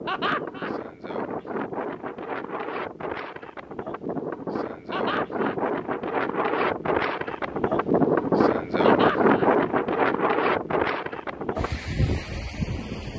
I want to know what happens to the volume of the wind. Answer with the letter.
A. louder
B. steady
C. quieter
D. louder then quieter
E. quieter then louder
D.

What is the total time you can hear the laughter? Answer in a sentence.
You can hear the laughter for 2 seconds altogether.